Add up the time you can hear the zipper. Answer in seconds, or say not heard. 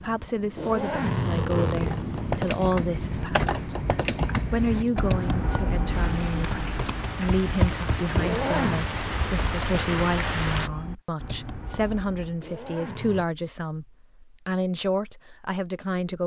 3 s.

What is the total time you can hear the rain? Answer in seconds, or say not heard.
11 s.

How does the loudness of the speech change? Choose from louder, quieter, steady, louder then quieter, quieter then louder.
steady.